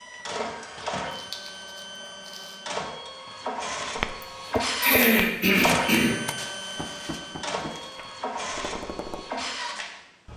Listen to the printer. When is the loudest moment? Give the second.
5 s.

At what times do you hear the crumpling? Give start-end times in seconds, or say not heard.
1.1-2.6, 6.3-8.1.